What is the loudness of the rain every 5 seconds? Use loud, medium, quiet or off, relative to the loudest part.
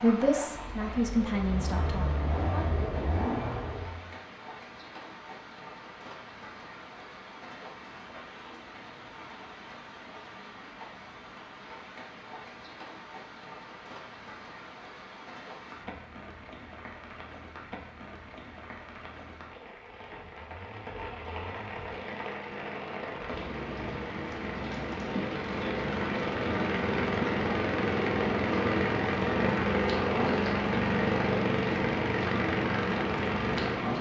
quiet, quiet, quiet, quiet, medium, loud, loud.